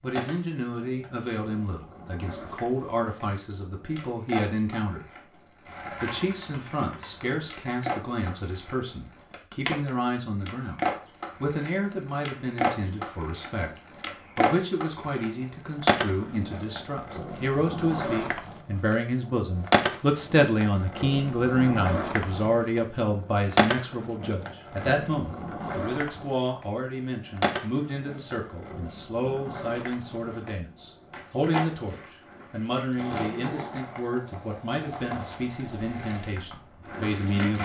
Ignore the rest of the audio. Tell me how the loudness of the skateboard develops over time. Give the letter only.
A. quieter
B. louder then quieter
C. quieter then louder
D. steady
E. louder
B.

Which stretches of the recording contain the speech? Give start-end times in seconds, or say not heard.
0.0-5.2, 6.0-10.8, 11.4-37.6.